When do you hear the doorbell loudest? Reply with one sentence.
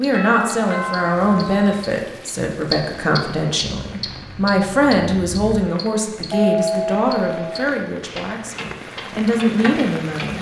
The volume of the doorbell peaks at 7 seconds.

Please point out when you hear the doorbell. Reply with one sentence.
You can hear the doorbell from 0.1 to 1.8 s and from 6.3 to 7.7 s.